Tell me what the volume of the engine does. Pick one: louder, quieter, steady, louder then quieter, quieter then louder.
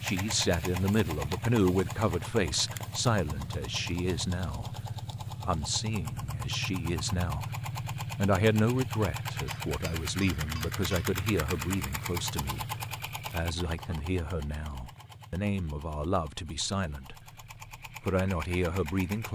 quieter.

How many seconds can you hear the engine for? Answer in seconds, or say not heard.
19 s.